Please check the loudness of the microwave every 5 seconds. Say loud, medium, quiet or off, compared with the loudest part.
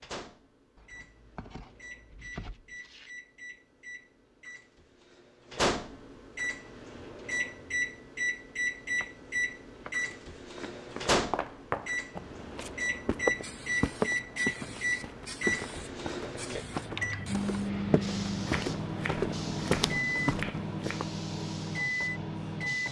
quiet, loud, loud, loud, loud.